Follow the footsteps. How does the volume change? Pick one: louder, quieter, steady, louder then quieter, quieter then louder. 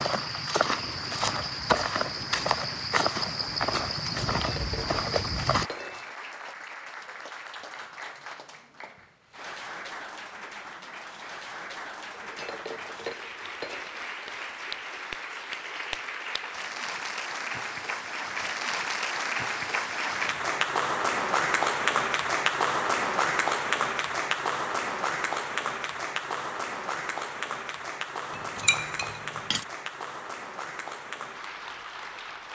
steady.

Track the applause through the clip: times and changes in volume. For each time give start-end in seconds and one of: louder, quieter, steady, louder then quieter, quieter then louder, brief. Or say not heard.
0.0-32.5 louder then quieter.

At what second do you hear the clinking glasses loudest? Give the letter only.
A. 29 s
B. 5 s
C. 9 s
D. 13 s
A.